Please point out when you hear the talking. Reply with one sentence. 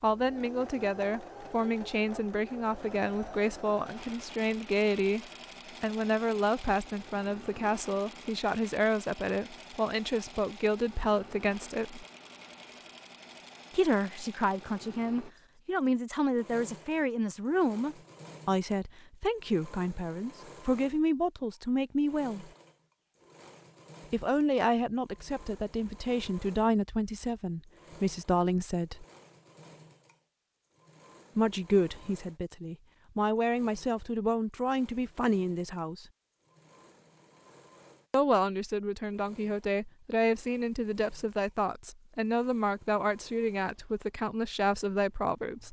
The talking can be heard from 0.0 to 12.1 s, from 13.7 to 22.4 s, from 24.1 to 29.1 s, from 31.4 to 36.0 s and from 38.1 to 45.6 s.